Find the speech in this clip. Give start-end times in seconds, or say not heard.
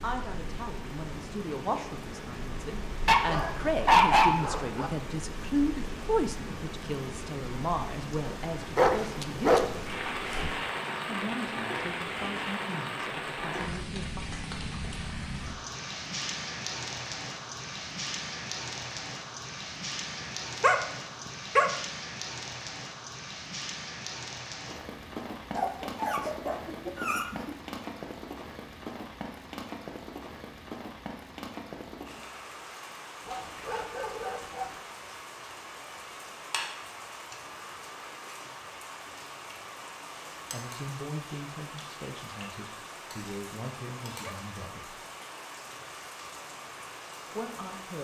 0.0-9.7, 11.1-14.2, 40.5-45.0, 47.4-47.9.